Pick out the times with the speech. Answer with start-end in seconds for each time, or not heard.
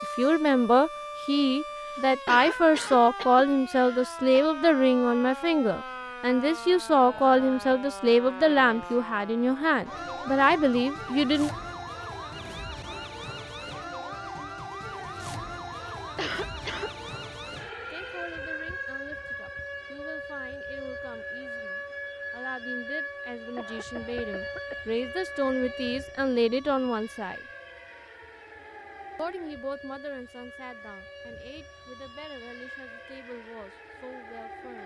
0.0-11.5, 17.9-27.4, 29.1-34.8.